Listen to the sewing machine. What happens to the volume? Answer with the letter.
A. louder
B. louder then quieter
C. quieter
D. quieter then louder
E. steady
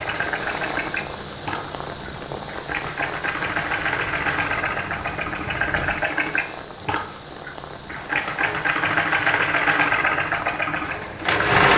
A.